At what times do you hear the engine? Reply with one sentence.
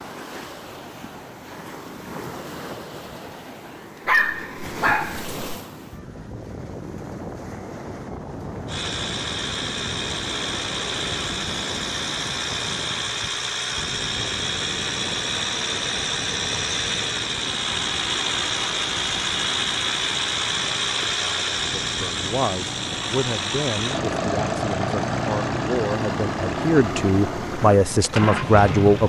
The engine can be heard from 8.7 to 29.0 s.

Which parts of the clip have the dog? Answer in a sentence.
You can hear the dog from 4.0 to 5.3 s.